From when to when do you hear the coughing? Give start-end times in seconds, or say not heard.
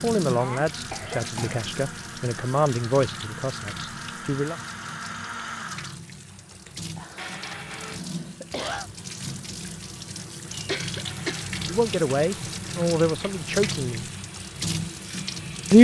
0.3-1.6, 7.0-8.9, 10.5-11.5.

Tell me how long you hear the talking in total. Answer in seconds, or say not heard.
7 s.